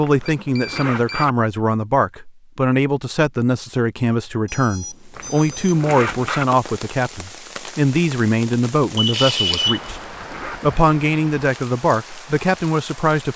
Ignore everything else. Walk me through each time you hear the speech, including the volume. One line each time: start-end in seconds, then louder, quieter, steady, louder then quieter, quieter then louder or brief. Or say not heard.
0.0-13.3 steady.